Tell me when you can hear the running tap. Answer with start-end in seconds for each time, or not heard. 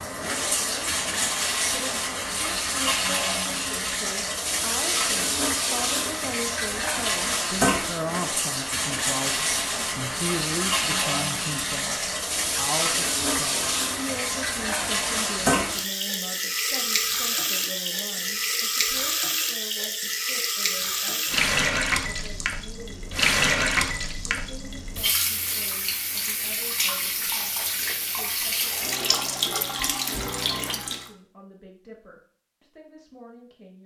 0.0-31.1.